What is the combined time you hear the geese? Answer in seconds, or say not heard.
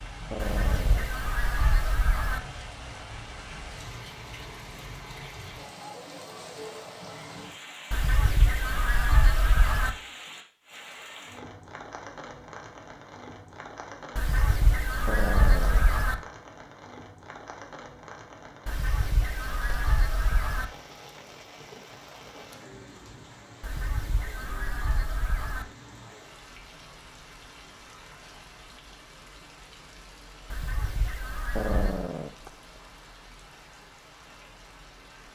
12 s.